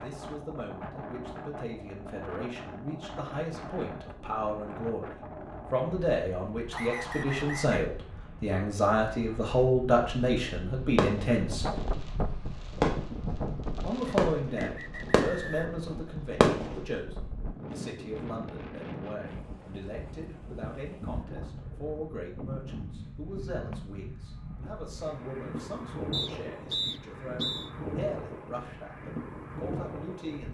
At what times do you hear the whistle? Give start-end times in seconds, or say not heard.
6.7-7.8, 14.1-15.6, 26.1-27.7.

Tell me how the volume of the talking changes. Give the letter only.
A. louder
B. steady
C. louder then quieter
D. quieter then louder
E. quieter
C.